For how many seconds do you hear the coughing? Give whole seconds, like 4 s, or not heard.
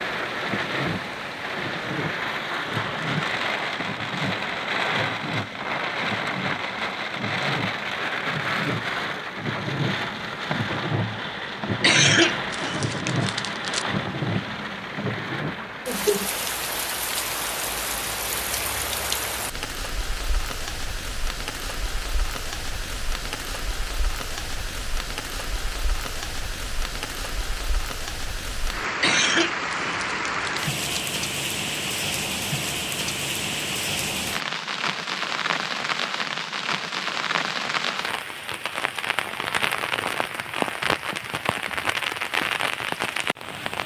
4 s.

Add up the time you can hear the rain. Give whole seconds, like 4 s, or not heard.
44 s.